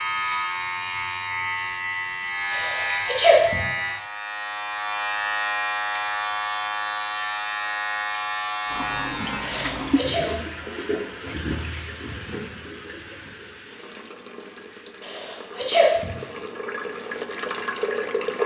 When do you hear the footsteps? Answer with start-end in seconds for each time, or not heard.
not heard.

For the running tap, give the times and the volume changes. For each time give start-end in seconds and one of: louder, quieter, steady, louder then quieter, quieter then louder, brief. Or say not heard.
8.7-18.4 quieter then louder.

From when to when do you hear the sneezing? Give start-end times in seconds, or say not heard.
2.5-3.6, 9.4-10.2, 15.1-16.1.